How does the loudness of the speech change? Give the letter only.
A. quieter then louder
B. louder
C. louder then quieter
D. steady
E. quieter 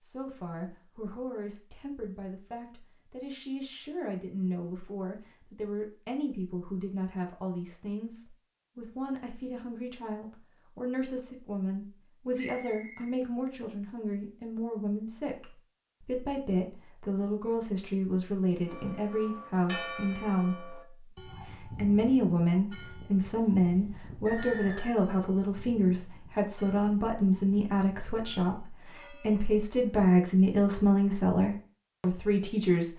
B.